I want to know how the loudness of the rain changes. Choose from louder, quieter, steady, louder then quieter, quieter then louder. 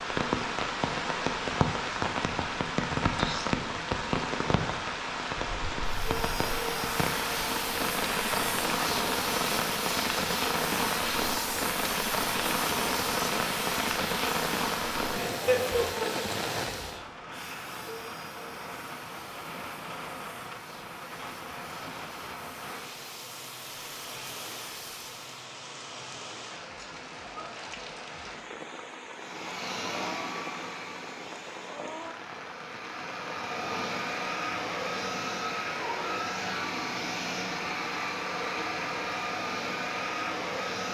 quieter.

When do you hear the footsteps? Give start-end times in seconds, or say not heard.
not heard.